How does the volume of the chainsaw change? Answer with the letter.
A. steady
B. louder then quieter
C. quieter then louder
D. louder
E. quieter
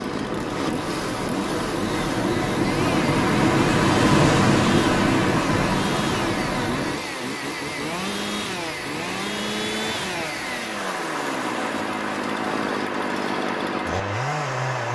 A.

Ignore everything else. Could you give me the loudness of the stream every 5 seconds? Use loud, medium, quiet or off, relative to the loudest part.
loud, medium, medium.